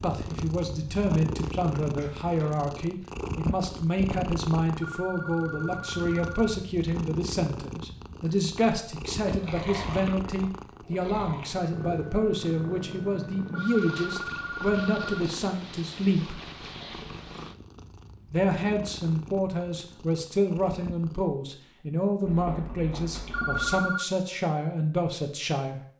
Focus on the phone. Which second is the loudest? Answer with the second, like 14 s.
24 s.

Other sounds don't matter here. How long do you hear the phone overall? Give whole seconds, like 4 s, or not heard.
4 s.